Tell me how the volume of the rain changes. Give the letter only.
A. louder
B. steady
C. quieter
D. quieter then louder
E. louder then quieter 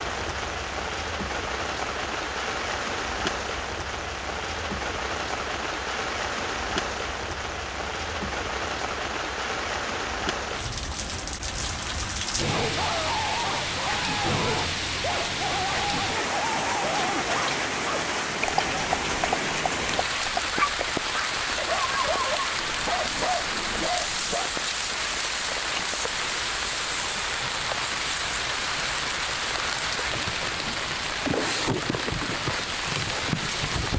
B.